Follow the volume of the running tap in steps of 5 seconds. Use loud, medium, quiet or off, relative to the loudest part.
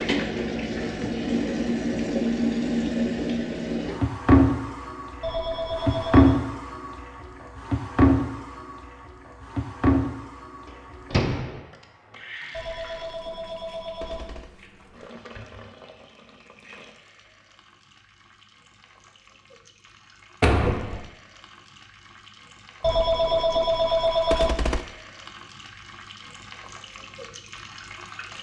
loud, loud, quiet, quiet, quiet, quiet.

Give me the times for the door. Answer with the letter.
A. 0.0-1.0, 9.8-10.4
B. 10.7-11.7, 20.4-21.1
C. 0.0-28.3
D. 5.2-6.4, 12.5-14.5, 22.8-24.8
B.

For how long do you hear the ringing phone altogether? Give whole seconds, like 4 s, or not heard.
5 s.